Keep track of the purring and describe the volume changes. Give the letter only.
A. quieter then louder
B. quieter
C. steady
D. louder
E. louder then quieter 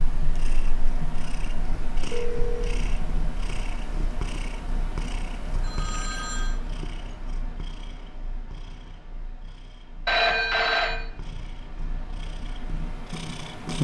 A.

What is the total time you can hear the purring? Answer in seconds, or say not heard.
14 s.